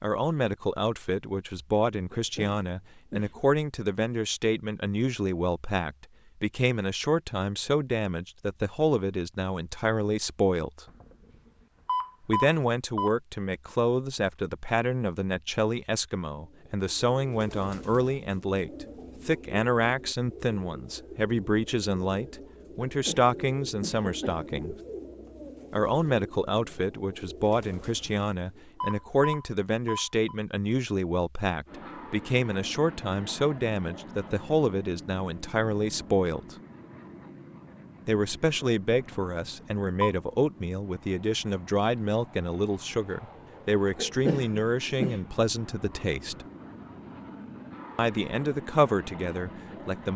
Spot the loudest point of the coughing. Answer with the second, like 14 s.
44 s.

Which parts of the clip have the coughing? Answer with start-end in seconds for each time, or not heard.
2.1-3.4, 22.9-24.5, 44.0-45.2.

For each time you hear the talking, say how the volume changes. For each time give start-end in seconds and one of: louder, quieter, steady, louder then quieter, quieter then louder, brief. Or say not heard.
0.0-10.8 steady
12.2-24.8 steady
25.7-36.5 steady
38.0-46.5 steady
48.0-50.1 brief.